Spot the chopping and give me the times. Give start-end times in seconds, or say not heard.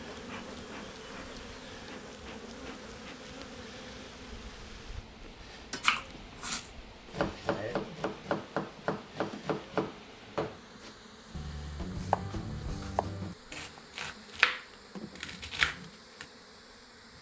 5.8-16.2.